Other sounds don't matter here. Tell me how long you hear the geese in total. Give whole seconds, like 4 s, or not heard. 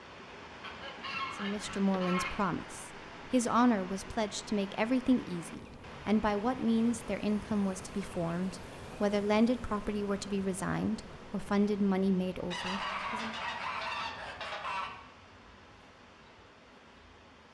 4 s.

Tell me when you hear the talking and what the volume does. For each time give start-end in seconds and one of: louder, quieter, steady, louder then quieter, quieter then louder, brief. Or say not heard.
1.4-13.3 steady.